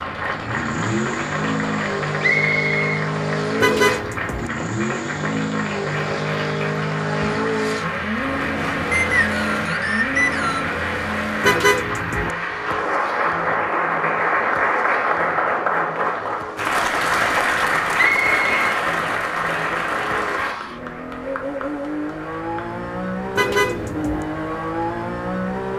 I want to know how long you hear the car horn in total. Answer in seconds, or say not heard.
3 s.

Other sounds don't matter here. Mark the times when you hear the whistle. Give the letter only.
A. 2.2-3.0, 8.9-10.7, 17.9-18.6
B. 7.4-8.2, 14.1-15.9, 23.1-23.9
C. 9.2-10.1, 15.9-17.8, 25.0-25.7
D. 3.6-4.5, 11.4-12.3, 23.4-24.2
A.